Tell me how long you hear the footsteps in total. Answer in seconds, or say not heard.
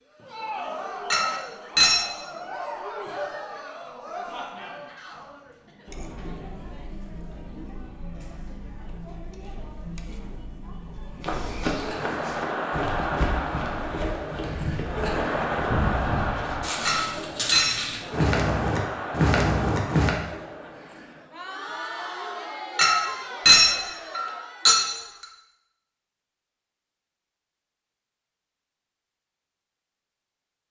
9 s.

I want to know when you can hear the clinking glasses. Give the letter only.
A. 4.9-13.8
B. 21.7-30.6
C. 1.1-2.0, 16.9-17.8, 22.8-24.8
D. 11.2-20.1
C.